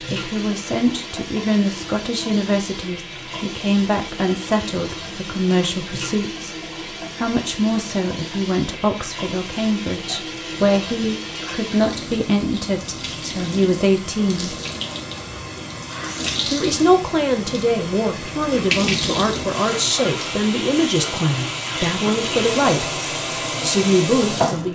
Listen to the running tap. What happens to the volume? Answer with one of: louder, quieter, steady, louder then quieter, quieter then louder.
louder.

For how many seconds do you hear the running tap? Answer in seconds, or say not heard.
25 s.